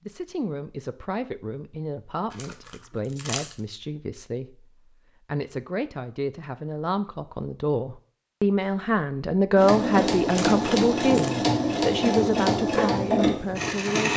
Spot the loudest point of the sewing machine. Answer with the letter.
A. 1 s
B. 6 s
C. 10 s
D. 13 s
D.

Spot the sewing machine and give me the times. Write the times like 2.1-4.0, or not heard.
9.6-14.1.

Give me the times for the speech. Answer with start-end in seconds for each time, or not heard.
0.1-14.1.